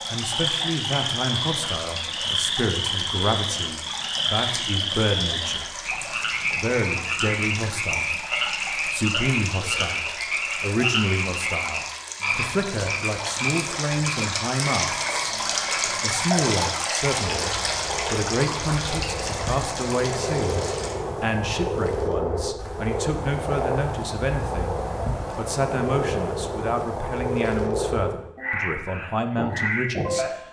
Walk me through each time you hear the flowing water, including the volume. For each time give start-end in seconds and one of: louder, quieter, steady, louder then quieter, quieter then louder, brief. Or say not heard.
0.0-20.9 louder.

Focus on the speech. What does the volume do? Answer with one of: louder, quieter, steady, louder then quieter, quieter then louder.
steady.